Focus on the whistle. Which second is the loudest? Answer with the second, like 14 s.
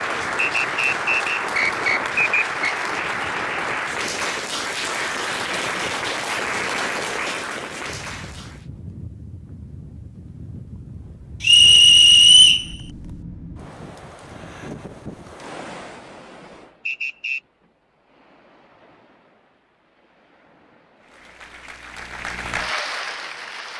12 s.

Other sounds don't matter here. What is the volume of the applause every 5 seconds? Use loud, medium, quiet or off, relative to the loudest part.
loud, loud, off, off, medium.